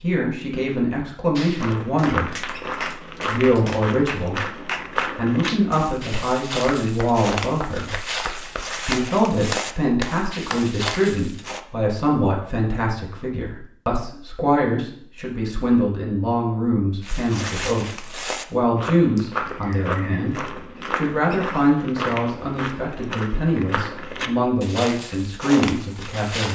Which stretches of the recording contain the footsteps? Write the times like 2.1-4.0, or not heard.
1.6-11.6, 17.0-26.5.